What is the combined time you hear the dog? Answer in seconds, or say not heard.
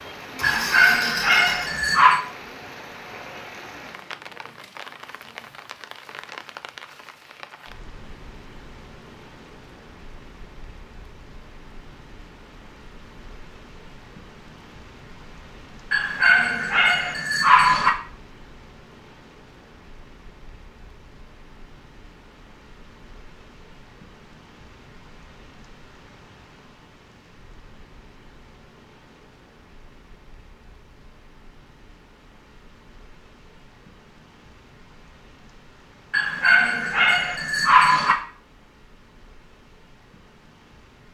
6 s.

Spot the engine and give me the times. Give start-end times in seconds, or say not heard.
0.2-1.8.